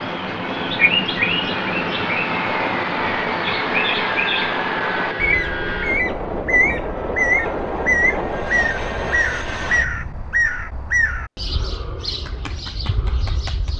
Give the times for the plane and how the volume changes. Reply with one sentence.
The plane can be heard from 0.0 to 10.3 s, at a steady volume.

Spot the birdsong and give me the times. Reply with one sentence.
You can hear the birdsong from 0.0 to 13.7 s.